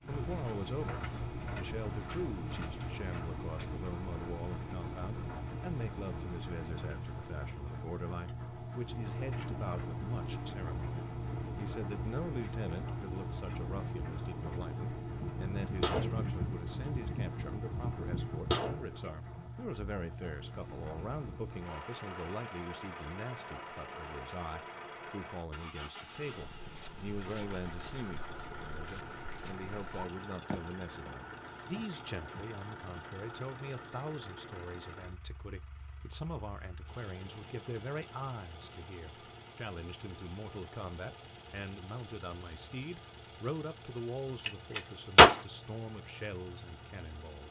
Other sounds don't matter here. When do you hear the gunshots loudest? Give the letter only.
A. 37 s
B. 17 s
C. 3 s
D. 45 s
D.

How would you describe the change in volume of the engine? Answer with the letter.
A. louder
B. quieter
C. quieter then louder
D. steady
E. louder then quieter
B.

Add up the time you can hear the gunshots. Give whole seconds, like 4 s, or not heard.
5 s.